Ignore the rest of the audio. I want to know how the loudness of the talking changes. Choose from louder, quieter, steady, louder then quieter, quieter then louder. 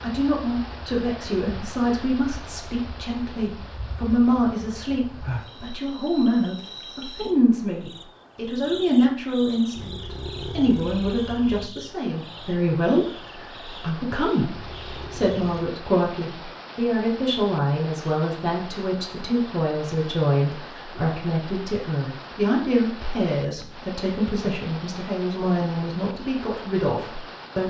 steady.